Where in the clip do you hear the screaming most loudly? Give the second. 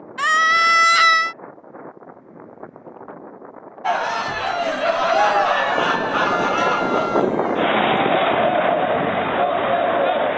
1 s.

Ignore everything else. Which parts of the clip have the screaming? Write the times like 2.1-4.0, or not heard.
0.1-1.4, 6.1-7.2.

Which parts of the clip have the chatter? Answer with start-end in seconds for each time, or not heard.
3.8-10.3.